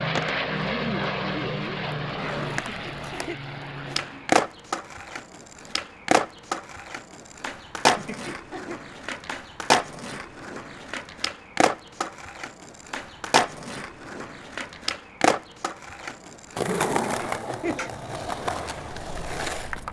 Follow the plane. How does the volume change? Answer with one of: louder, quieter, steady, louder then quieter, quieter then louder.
quieter.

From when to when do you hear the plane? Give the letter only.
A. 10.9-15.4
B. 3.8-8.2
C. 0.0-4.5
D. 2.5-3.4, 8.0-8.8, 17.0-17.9
C.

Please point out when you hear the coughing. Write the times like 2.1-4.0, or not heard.
2.5-3.4, 8.0-8.8, 17.0-17.9.